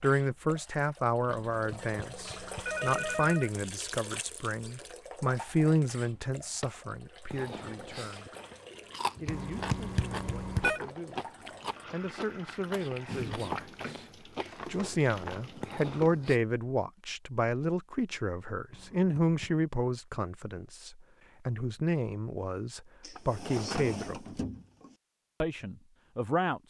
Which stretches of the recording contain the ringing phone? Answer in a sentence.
The ringing phone can be heard from 1.5 to 3.5 s, from 9.2 to 10.8 s and from 18.7 to 19.6 s.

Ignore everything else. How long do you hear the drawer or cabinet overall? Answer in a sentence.
The drawer or cabinet can be heard for 4 seconds in total.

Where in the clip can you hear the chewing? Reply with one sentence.
You can hear the chewing from 7.3 to 16.4 s.